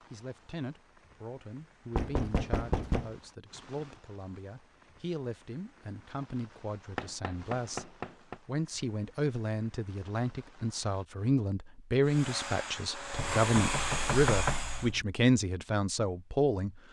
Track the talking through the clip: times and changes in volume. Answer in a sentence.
You can hear the talking from 0.1 to 16.8 s, getting louder.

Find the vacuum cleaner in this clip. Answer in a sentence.
The vacuum cleaner can be heard from 12.1 to 14.9 s.